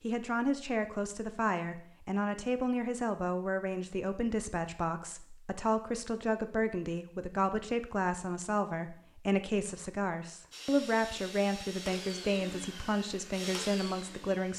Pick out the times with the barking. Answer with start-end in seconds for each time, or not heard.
not heard.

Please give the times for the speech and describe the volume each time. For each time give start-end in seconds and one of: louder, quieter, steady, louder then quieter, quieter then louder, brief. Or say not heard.
0.0-14.5 steady.